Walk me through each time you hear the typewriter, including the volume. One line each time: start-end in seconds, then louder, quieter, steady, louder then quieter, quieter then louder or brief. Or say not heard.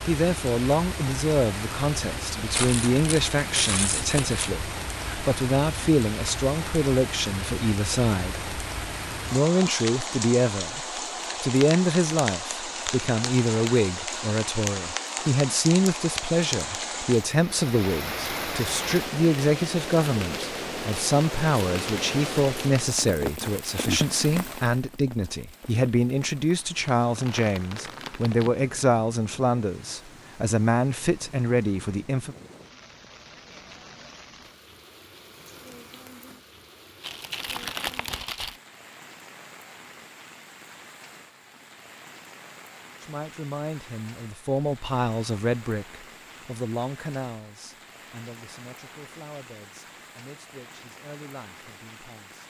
not heard.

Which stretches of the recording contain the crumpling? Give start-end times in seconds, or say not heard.
2.5-4.4, 26.9-28.5, 37.0-38.5.